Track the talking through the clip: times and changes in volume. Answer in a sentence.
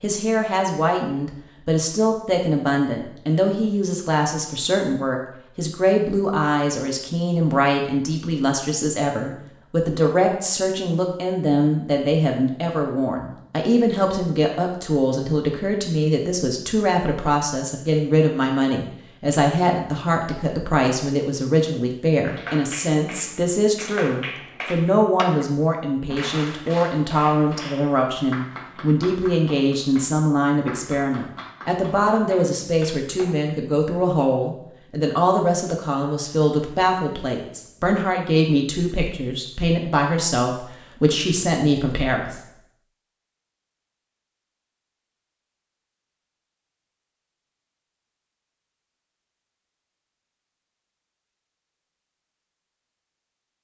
You can hear the talking from 0.0 to 42.4 s, at a steady volume.